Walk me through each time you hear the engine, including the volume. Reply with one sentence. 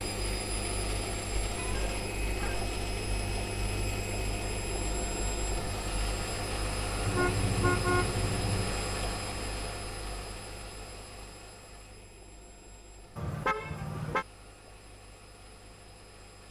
The engine can be heard from 0.0 to 16.4 s, getting quieter.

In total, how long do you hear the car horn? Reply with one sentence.
The car horn can be heard for 4 seconds in total.